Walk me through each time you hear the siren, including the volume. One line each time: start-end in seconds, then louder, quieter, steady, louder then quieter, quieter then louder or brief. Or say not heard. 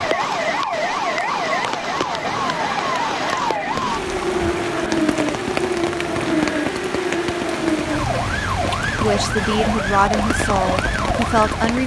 0.0-11.7 steady.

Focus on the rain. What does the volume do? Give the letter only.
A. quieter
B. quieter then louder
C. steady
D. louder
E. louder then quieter
C.